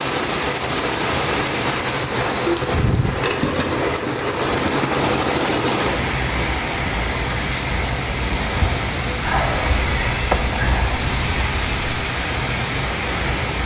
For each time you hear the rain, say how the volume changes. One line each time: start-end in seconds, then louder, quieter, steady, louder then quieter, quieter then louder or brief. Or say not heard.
0.0-13.6 steady.